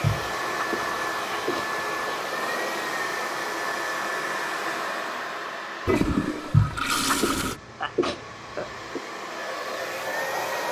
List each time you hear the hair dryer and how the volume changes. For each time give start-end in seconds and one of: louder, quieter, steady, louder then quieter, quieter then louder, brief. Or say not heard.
0.0-10.6 quieter then louder.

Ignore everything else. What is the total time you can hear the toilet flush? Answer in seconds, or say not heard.
2 s.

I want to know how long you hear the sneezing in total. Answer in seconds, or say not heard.
5 s.